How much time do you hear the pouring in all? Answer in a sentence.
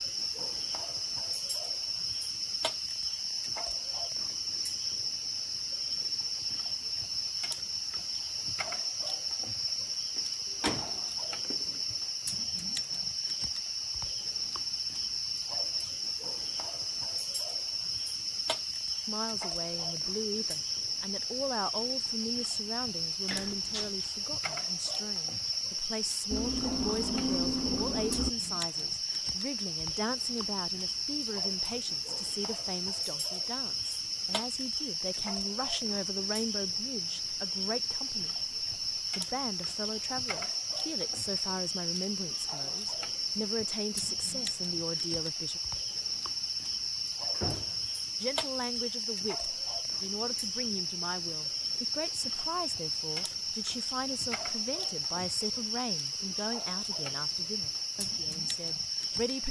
The pouring can be heard for 2 seconds in total.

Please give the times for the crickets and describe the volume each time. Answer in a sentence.
The crickets can be heard from 0.0 to 59.4 s, at a steady volume.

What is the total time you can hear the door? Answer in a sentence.
You can hear the door for 3 seconds altogether.